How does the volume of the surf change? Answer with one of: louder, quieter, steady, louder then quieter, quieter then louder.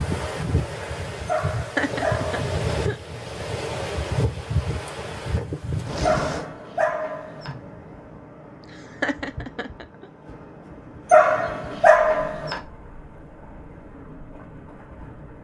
quieter.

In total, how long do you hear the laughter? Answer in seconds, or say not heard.
3 s.